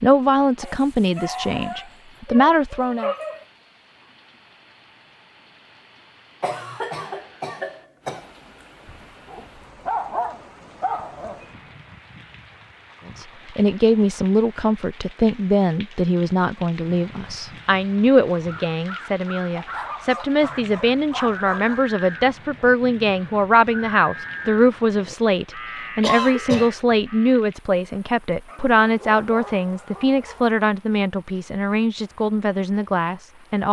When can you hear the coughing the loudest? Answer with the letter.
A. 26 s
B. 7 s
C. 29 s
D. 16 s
A.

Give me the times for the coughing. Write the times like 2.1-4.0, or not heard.
6.4-8.3, 26.0-26.7.